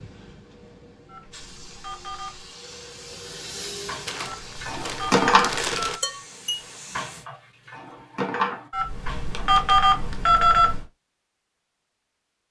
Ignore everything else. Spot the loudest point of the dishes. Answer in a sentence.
The loudest moment of the dishes is at 5 seconds.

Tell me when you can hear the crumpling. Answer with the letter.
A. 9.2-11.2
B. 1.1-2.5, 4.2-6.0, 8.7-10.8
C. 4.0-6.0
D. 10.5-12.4
C.